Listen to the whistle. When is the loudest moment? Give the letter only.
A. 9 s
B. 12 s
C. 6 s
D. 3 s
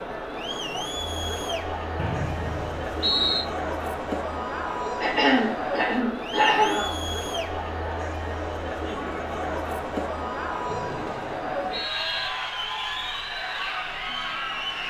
D.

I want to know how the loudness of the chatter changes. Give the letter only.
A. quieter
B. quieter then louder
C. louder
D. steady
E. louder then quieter
D.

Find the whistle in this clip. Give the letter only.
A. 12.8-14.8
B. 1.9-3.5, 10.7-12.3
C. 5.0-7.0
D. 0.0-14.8
B.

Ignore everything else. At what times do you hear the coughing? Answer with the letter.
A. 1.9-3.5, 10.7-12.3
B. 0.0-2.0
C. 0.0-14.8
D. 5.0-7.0
D.